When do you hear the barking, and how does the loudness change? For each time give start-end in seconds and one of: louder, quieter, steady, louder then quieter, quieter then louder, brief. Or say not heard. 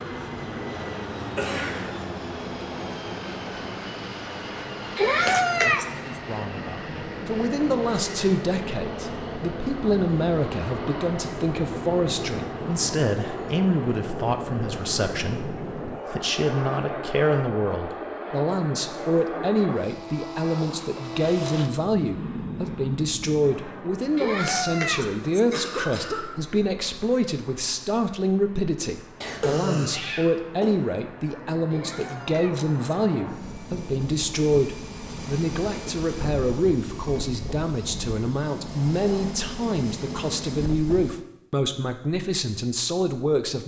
not heard.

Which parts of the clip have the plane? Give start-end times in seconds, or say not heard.
0.0-41.2.